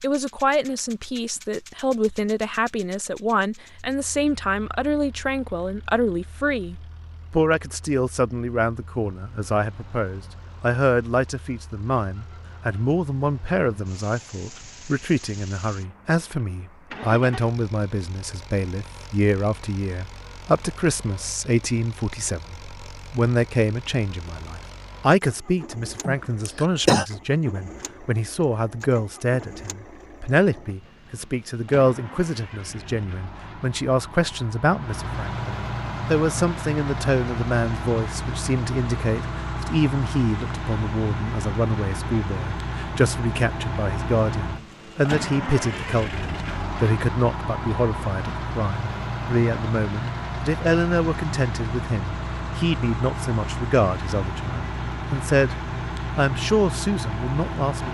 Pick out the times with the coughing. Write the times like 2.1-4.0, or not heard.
26.0-27.1.